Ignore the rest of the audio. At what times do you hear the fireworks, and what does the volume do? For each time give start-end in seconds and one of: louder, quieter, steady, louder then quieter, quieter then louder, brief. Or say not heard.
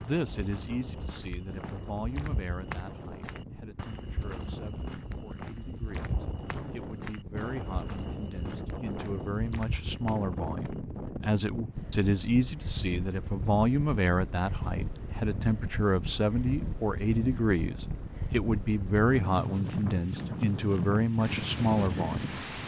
not heard.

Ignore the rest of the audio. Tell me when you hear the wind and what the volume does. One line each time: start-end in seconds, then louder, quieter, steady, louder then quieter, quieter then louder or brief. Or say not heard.
0.0-22.6 louder.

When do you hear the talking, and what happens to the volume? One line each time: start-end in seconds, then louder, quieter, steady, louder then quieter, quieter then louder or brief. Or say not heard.
0.0-22.4 louder.